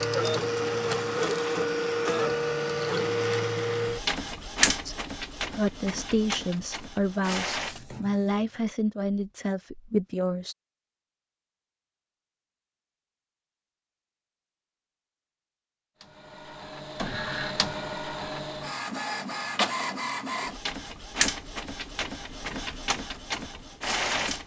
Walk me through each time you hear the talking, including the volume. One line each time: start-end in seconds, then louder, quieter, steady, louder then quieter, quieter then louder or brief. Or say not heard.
4.8-10.6 steady.